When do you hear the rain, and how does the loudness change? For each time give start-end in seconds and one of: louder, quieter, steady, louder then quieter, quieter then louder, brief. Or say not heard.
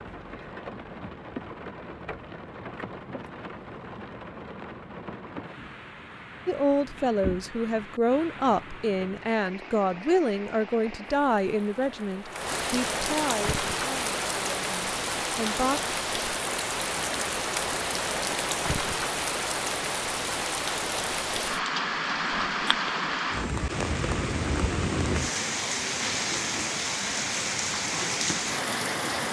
0.0-29.2 louder.